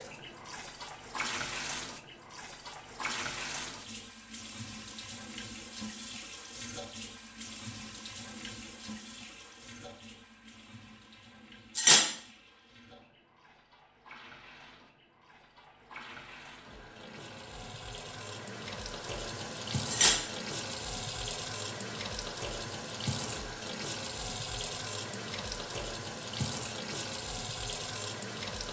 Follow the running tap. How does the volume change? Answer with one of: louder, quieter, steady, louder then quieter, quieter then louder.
quieter then louder.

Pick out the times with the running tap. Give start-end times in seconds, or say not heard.
0.0-28.6.